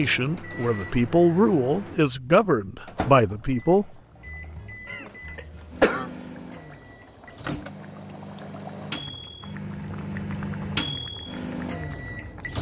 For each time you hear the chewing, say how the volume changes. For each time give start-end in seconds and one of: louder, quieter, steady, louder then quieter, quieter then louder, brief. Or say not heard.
not heard.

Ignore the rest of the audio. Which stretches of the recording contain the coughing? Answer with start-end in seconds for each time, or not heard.
4.8-6.1.